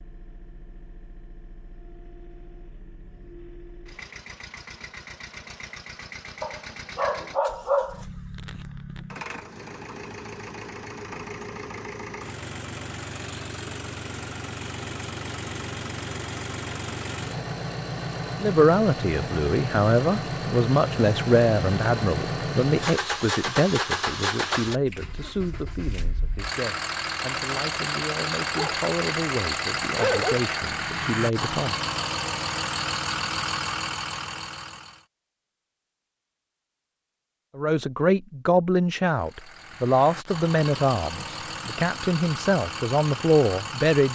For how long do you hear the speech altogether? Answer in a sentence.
The speech can be heard for 20 seconds in total.